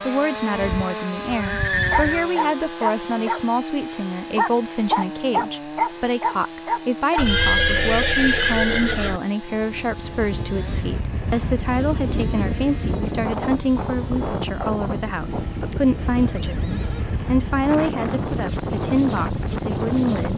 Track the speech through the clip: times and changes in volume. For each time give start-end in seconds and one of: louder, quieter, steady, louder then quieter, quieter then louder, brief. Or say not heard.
0.1-20.3 steady.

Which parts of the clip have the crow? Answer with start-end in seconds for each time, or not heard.
not heard.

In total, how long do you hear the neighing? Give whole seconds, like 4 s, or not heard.
6 s.